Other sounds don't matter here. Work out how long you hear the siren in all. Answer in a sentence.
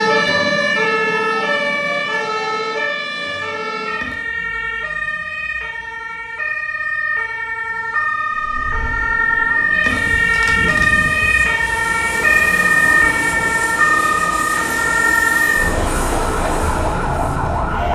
The siren can be heard for 18 seconds in total.